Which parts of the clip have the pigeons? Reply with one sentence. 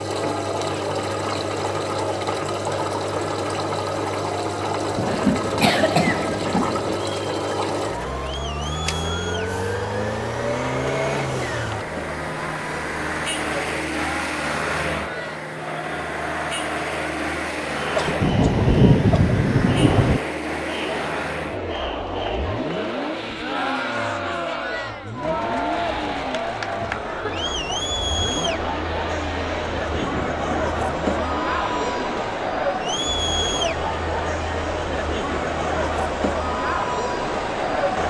You can't hear the pigeons here.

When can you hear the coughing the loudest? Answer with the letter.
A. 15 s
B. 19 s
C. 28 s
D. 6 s
D.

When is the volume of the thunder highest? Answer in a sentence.
The volume of the thunder peaks at 19 seconds.